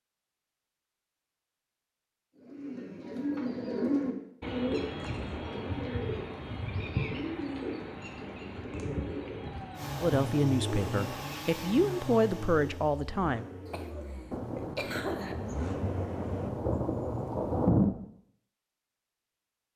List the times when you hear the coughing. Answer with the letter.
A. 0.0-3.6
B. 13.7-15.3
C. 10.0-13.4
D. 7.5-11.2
B.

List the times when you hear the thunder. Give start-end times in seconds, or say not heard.
14.3-17.9.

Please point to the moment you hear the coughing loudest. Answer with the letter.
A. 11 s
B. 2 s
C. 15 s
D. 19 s
C.